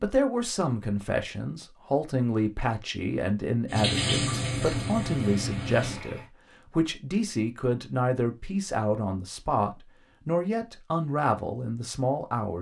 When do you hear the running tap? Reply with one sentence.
You can hear the running tap from 3.6 to 6.2 s.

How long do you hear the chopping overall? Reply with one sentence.
The chopping can't be heard in this clip.